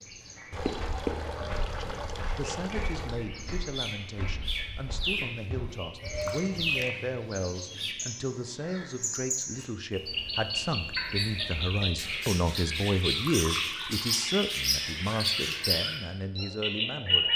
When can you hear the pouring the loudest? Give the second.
1 s.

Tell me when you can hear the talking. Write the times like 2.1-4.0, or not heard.
1.8-17.3.